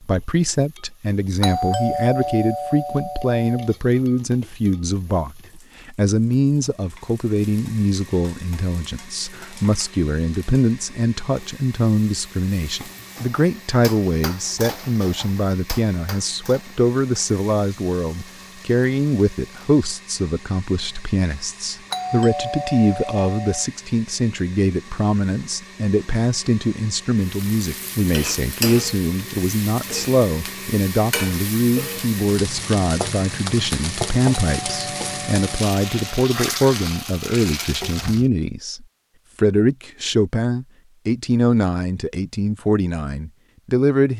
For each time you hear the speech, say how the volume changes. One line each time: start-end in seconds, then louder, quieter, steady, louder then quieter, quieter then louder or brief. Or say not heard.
0.0-44.1 steady.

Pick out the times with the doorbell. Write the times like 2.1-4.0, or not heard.
1.4-3.8, 21.9-23.7, 34.5-36.1.